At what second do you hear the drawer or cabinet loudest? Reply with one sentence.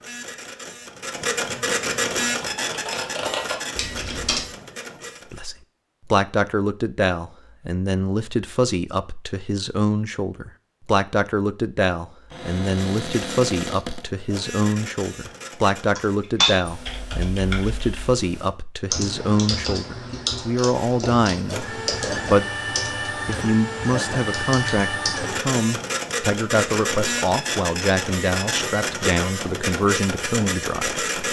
The loudest moment of the drawer or cabinet is at 14 seconds.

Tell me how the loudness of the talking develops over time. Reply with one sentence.
The volume of the talking stays about the same.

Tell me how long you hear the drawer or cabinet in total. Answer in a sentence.
The drawer or cabinet can be heard for 2 seconds in total.